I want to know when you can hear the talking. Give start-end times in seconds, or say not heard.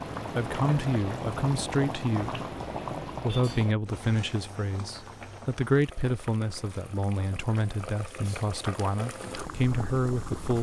0.3-2.5, 3.2-10.5.